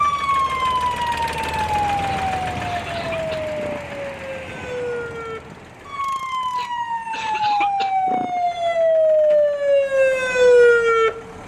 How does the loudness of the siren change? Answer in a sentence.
The loudness of the siren goes down, then up.